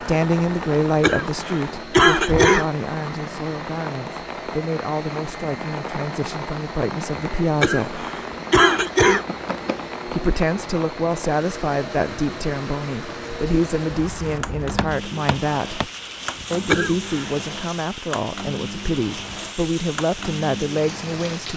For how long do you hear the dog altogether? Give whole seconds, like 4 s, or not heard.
not heard.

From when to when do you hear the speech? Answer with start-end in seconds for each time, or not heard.
0.1-8.1, 10.1-15.8, 16.5-21.5.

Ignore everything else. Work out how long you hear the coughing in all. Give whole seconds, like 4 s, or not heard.
4 s.